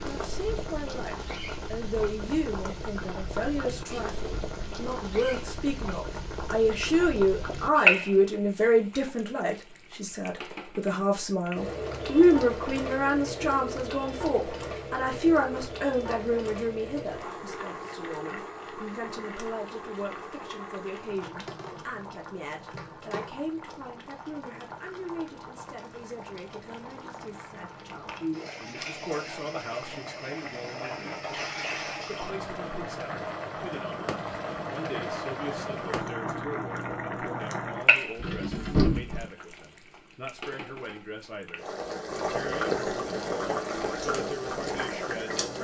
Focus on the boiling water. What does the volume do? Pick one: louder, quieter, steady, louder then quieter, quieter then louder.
quieter then louder.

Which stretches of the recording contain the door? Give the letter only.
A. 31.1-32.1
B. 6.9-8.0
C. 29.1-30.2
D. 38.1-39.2
D.